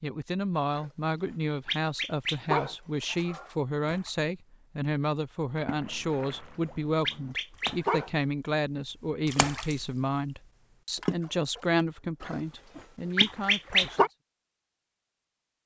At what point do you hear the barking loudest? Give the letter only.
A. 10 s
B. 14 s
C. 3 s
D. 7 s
B.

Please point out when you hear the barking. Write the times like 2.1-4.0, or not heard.
0.7-3.5, 6.1-8.1, 12.2-14.1.